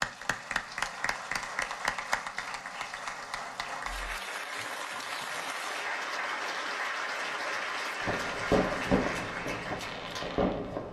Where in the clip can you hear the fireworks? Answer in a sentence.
You can hear the fireworks from 8.0 to 10.8 s.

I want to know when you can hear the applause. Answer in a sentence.
You can hear the applause from 0.0 to 10.4 s.